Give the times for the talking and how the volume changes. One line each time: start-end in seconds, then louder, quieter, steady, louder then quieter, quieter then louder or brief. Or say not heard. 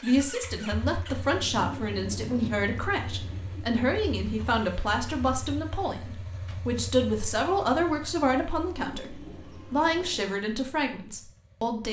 0.0-11.8 steady.